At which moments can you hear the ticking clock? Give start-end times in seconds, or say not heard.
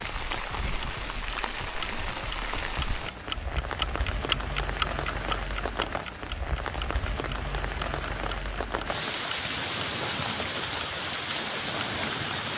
0.3-12.3.